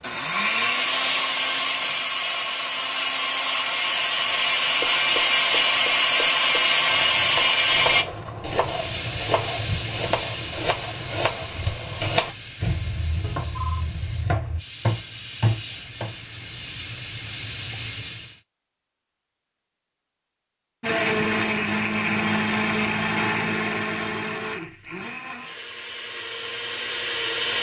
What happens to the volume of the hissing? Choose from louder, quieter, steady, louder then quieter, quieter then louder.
quieter then louder.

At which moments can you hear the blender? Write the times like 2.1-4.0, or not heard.
0.0-8.1, 20.8-27.5.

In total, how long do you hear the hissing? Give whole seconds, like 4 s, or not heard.
10 s.